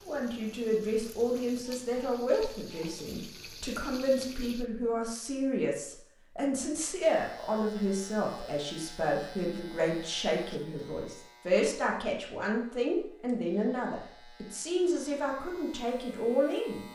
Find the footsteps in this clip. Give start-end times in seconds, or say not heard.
not heard.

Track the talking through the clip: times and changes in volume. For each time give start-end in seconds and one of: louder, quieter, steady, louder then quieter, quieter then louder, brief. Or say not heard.
0.0-16.9 steady.